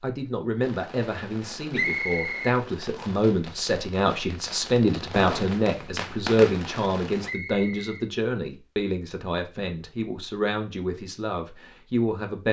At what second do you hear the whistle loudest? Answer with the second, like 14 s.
2 s.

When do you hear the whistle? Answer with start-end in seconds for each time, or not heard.
1.7-3.1, 7.2-8.1.